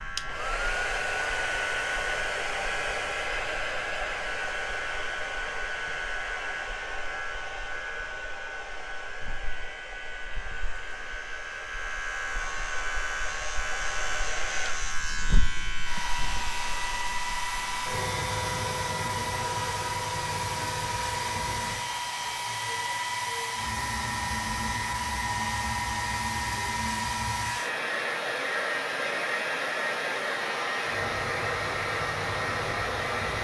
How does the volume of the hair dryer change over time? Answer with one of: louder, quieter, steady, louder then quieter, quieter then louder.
quieter then louder.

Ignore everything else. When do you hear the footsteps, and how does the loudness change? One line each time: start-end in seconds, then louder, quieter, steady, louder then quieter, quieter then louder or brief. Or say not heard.
not heard.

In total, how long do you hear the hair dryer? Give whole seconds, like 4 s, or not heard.
33 s.